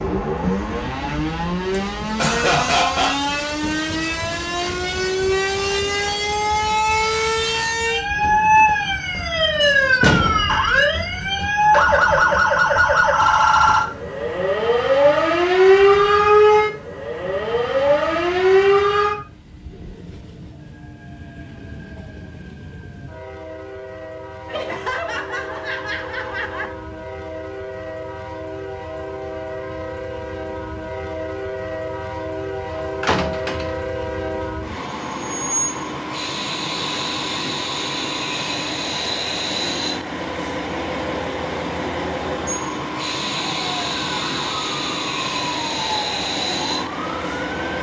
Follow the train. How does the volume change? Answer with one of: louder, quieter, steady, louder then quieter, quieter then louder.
quieter then louder.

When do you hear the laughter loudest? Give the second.
3 s.